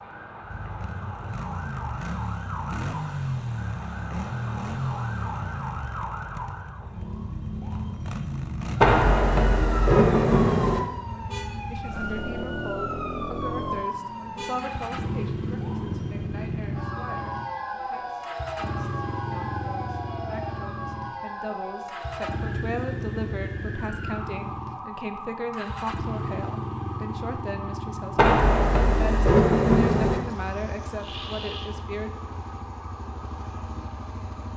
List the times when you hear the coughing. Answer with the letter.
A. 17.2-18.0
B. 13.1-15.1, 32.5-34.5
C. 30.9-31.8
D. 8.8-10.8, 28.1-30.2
C.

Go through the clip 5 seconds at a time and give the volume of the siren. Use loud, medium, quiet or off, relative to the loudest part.
medium, loud, loud, loud, loud, medium, medium.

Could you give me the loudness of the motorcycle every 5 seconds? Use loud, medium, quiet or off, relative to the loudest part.
loud, loud, loud, loud, loud, loud, medium.